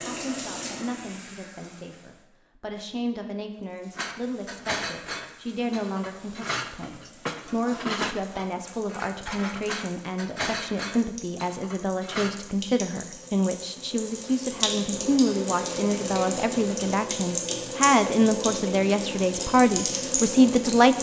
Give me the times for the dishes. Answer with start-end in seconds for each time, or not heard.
4.0-12.6.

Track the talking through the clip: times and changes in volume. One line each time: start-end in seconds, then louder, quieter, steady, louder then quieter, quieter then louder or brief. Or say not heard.
0.0-20.9 louder.